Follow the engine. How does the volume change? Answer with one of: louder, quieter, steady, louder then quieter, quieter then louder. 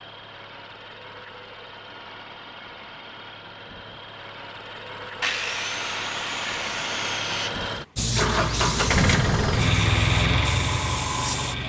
louder.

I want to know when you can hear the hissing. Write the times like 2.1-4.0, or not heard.
8.0-11.6.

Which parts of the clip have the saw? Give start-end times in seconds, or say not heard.
5.2-7.5.